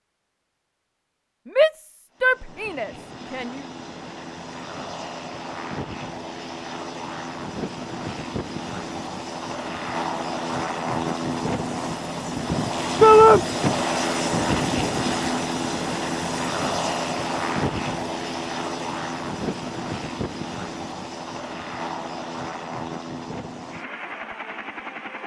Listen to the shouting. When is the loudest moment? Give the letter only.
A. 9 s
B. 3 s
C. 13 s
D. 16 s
C.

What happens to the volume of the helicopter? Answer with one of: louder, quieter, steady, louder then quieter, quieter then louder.
louder then quieter.